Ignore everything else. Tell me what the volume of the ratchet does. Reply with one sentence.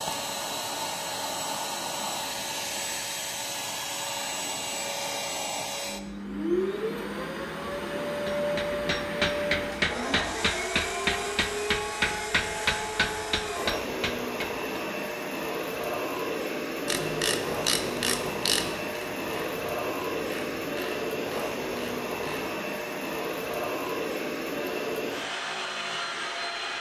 The volume of the ratchet goes down.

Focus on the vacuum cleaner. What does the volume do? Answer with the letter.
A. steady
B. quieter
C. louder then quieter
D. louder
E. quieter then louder
A.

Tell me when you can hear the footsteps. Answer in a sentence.
You can't hear the footsteps here.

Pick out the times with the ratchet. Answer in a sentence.
The ratchet can be heard from 16.9 to 22.4 s.